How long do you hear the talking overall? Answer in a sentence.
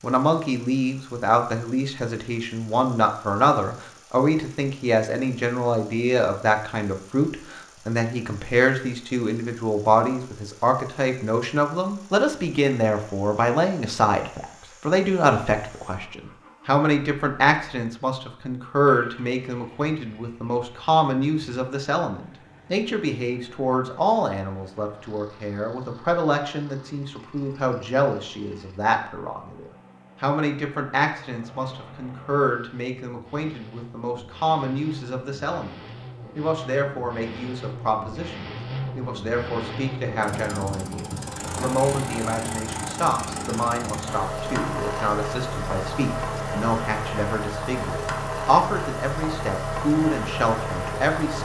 You can hear the talking for 51 seconds altogether.